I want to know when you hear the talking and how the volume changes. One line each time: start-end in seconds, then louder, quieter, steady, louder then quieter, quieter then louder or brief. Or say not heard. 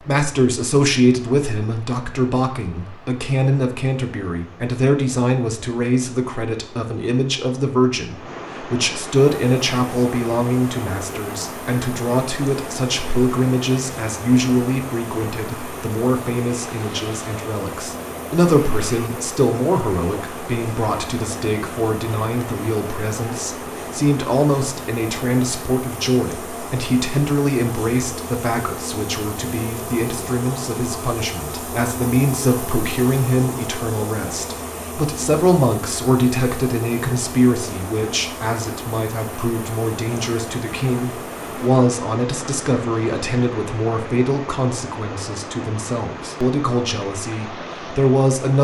0.1-48.5 steady.